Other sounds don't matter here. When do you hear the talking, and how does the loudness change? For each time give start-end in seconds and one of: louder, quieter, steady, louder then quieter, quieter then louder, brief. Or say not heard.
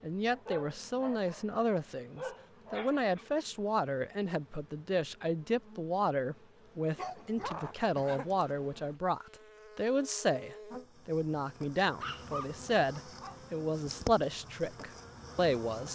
0.0-15.8 steady.